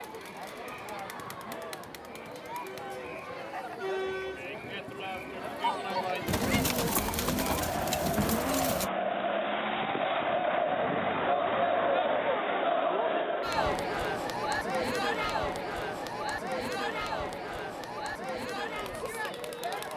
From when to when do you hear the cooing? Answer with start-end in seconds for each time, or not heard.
6.2-8.9.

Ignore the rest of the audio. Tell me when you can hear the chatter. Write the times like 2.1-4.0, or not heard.
0.0-19.9.